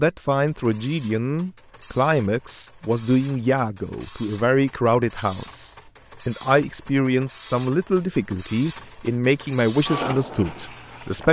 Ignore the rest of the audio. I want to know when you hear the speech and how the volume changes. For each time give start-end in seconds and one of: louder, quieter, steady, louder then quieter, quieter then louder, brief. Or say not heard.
0.0-11.2 steady.